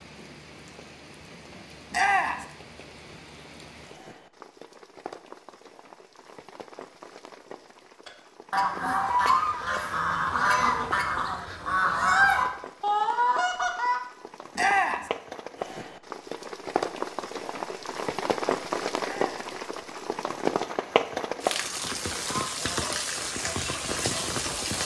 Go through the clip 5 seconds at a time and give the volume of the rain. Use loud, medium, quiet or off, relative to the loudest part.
quiet, quiet, quiet, loud, loud.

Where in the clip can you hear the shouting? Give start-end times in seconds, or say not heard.
1.9-2.5, 14.6-15.1, 19.0-19.6.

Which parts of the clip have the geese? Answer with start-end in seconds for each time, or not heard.
8.1-14.0, 22.4-24.8.